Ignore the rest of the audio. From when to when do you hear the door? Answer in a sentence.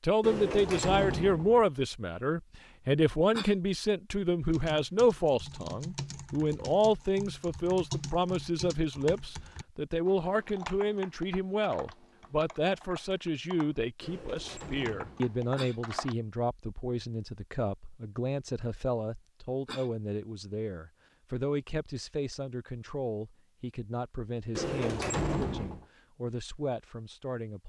The door can be heard from 0.2 to 1.6 s, from 14.0 to 15.4 s and from 24.6 to 25.9 s.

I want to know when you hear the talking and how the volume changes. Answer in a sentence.
The talking can be heard from 0.0 to 27.6 s, getting quieter.